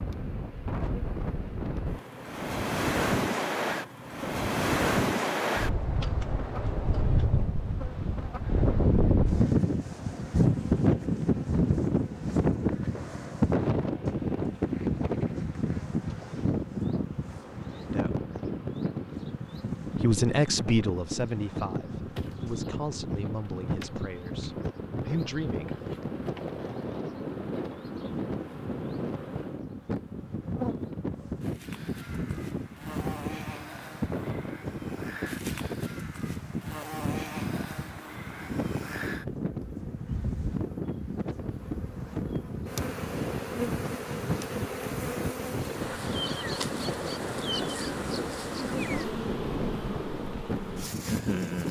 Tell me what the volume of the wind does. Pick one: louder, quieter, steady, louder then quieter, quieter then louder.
quieter.